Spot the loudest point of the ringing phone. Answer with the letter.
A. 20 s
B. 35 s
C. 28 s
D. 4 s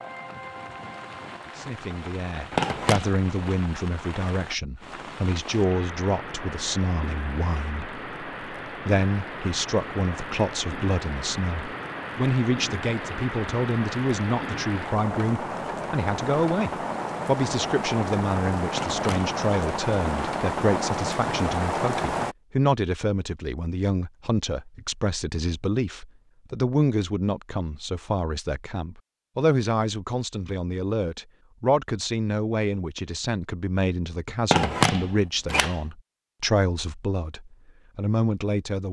B.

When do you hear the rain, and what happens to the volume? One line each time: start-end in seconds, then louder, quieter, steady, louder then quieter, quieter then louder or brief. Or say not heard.
0.0-22.4 louder.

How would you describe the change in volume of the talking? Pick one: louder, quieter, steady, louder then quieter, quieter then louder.
steady.